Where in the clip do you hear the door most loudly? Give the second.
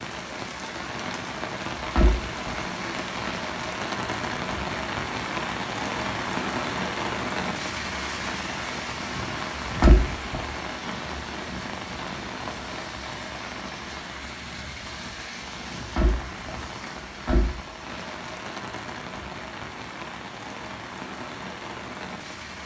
10 s.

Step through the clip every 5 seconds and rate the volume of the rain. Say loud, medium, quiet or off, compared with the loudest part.
loud, loud, medium, medium, medium.